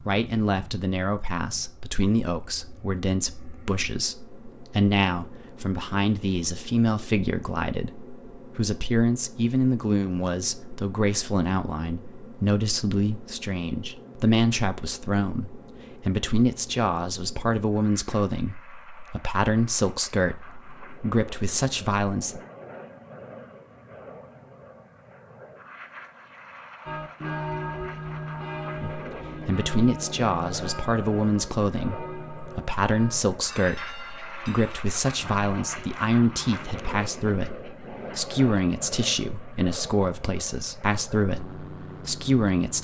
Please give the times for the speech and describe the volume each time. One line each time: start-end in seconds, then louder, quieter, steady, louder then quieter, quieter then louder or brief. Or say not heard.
0.0-22.4 steady
28.9-42.7 steady.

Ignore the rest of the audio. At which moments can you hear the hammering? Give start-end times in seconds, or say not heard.
not heard.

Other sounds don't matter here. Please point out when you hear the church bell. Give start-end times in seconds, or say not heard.
26.9-36.8.